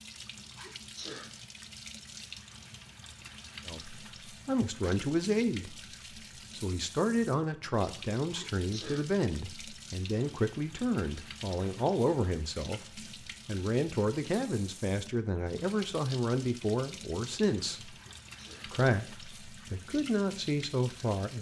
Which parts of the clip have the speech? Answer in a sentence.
The speech can be heard from 3.6 to 5.8 s, from 6.5 to 17.9 s and from 18.6 to 21.3 s.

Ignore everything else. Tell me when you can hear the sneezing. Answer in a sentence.
The sneezing can be heard from 0.6 to 1.3 s, from 8.3 to 9.1 s and from 17.9 to 18.7 s.